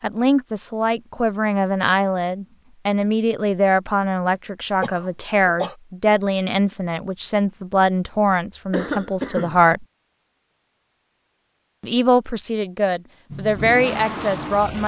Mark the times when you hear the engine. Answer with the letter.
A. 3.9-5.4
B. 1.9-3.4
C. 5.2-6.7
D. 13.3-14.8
D.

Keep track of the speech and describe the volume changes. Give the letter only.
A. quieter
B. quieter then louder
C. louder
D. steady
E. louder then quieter
D.